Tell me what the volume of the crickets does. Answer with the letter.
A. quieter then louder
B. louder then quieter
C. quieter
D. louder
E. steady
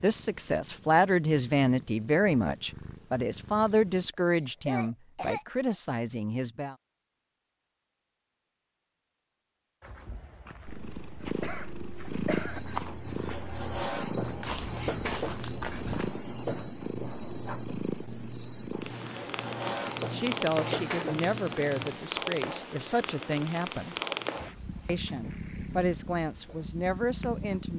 C.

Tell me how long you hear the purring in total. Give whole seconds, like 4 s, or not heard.
21 s.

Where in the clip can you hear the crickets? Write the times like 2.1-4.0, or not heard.
12.2-27.7.